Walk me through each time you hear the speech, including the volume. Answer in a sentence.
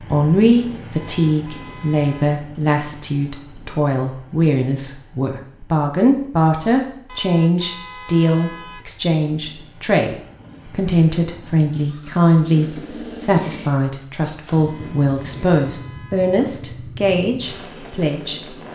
You can hear the speech from 0.0 to 18.6 s, at a steady volume.